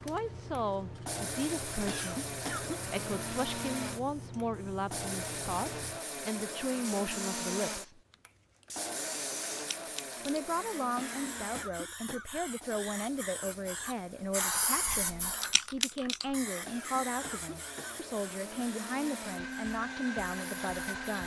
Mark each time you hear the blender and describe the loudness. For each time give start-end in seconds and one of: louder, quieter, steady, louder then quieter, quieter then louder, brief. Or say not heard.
0.0-21.2 quieter then louder.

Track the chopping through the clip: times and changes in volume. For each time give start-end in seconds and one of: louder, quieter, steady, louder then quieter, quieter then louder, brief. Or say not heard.
not heard.